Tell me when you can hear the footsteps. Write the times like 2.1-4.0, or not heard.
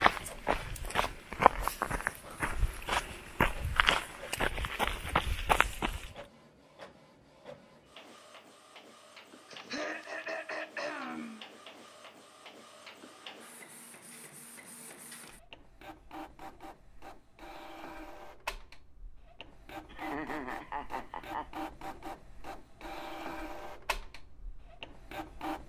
0.0-6.2.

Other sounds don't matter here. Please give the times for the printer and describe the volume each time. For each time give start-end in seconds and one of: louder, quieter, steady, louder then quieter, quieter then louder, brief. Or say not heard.
0.1-25.6 louder.